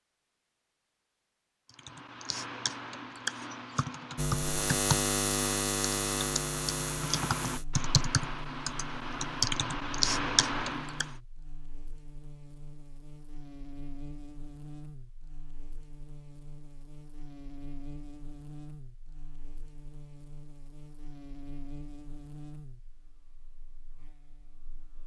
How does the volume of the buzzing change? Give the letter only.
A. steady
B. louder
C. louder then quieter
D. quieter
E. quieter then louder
D.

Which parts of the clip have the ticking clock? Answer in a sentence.
The ticking clock can't be heard in this clip.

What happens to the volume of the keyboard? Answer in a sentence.
The loudness of the keyboard goes up.